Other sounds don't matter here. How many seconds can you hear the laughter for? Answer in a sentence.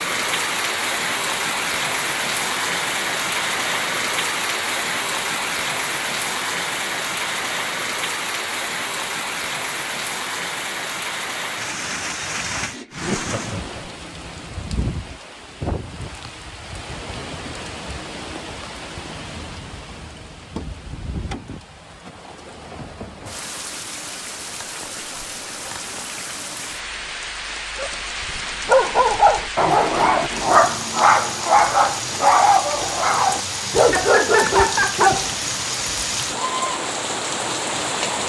You can hear the laughter for 3 seconds altogether.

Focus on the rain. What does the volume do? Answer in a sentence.
The volume of the rain goes down, then up.